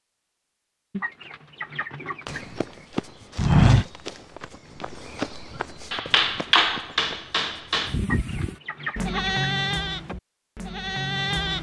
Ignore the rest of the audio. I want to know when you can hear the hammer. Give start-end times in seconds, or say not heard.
5.9-8.0.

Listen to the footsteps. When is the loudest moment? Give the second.
4 s.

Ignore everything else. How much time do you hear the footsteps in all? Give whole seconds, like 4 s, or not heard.
5 s.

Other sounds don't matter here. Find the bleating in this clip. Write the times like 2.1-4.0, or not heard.
7.8-11.5.